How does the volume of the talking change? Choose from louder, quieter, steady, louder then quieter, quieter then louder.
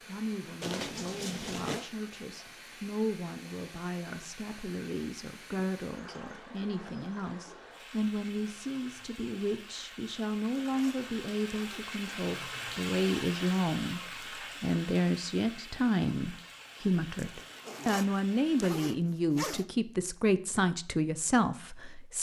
louder.